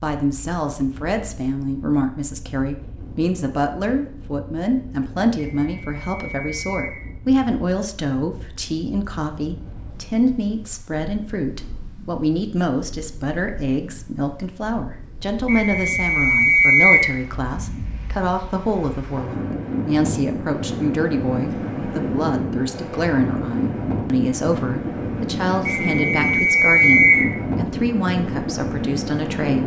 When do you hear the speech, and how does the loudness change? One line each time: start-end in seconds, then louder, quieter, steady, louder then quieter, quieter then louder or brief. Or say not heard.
0.0-29.6 steady.